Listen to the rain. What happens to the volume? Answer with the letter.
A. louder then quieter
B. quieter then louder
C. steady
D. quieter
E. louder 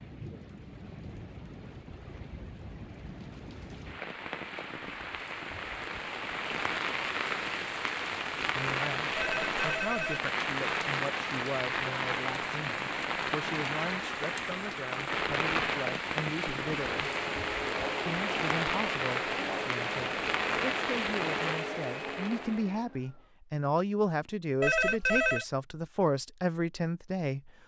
E.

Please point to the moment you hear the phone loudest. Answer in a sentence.
The loudest moment of the phone is at 25 seconds.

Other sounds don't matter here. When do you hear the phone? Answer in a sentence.
The phone can be heard from 9.2 to 10.2 s and from 24.6 to 25.4 s.